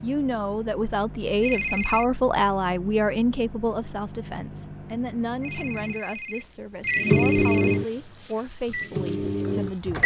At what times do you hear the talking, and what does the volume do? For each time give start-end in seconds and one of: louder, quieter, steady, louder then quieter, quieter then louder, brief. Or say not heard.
0.0-10.0 quieter.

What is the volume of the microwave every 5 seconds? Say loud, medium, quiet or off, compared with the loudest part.
quiet, loud.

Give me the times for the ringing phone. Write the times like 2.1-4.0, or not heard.
1.4-2.0, 5.4-7.8.